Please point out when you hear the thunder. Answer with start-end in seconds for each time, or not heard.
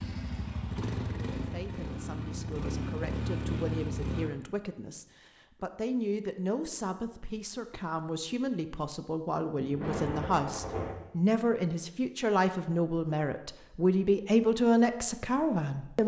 9.6-10.9.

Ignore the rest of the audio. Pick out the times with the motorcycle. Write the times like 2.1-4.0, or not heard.
0.0-4.3.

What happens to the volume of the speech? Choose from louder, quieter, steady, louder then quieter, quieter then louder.
louder.